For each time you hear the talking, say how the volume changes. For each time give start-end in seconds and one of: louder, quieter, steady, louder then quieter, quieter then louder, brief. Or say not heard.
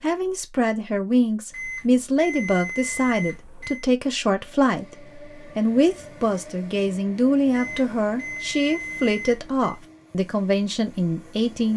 0.0-11.7 steady.